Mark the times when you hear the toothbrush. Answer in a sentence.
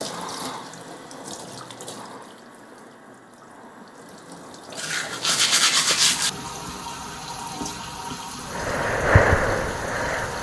You can hear the toothbrush from 4.8 to 6.3 s.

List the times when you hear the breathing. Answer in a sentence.
The breathing can be heard from 8.4 to 10.3 s.